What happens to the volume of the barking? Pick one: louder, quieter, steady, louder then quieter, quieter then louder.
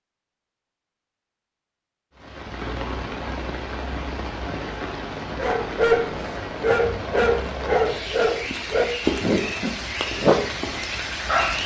steady.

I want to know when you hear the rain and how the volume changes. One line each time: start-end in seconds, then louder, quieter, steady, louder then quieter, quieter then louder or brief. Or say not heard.
2.1-11.6 steady.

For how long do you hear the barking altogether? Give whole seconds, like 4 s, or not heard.
6 s.